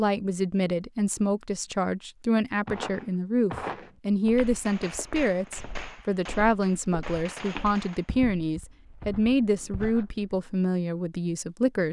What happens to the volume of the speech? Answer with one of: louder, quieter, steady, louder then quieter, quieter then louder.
steady.